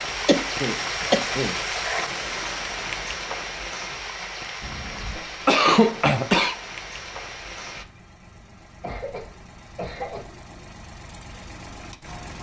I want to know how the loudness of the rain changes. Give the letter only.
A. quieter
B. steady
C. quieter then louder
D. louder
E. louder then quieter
A.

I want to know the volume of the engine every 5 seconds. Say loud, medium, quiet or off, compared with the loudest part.
off, medium, loud.